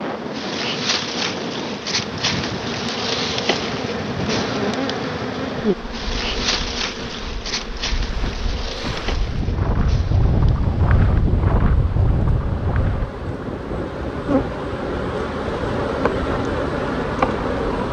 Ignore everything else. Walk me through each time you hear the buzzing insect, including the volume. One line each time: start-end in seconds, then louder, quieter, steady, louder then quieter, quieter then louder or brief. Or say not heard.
0.0-17.8 quieter then louder.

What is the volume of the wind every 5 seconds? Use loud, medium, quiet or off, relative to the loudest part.
medium, medium, loud, medium.